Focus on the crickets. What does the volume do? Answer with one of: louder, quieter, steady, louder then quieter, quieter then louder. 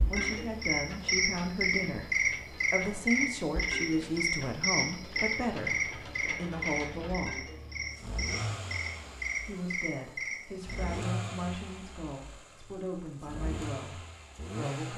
quieter.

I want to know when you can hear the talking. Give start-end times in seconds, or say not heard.
0.0-7.5, 9.4-14.9.